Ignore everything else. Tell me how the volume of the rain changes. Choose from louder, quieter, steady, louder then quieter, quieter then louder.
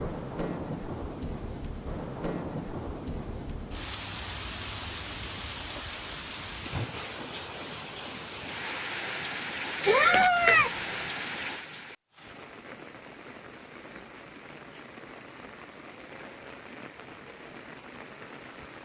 quieter.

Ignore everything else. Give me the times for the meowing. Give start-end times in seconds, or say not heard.
9.8-11.1.